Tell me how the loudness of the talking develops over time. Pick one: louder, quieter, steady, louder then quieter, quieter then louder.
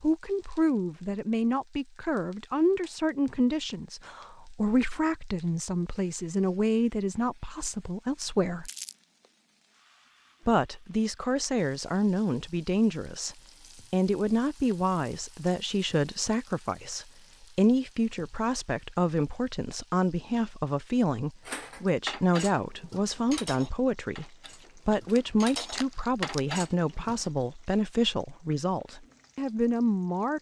steady.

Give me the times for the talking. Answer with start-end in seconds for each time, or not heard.
0.0-8.7, 10.4-30.3.